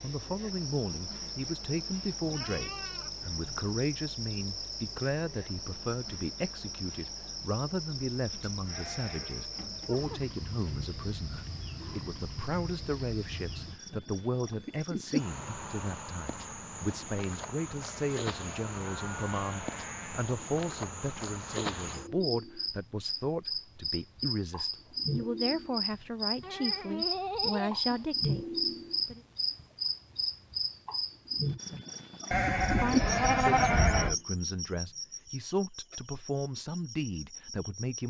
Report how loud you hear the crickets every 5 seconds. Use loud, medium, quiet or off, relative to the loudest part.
medium, medium, medium, medium, medium, loud, loud, quiet.